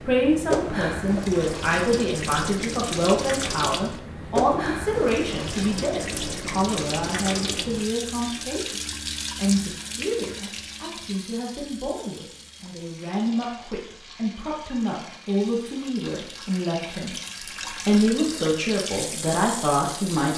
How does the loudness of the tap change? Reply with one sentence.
The loudness of the tap goes down, then up.